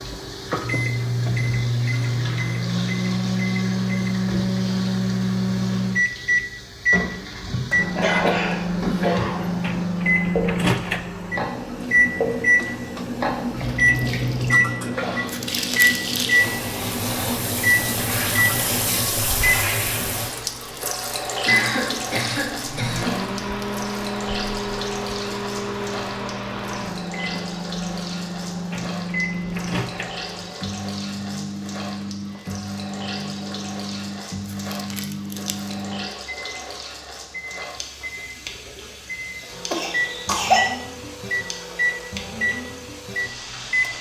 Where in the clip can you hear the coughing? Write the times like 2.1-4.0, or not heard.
7.8-9.4, 21.4-23.2, 39.7-40.6.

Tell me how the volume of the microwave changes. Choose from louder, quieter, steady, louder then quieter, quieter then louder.
quieter.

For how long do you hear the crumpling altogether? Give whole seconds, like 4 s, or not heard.
2 s.